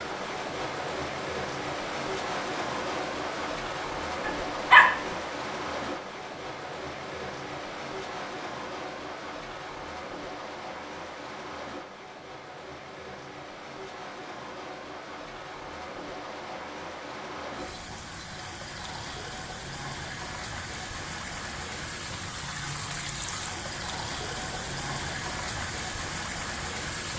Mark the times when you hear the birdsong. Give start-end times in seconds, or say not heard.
not heard.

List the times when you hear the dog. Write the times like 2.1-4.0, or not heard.
4.2-4.9.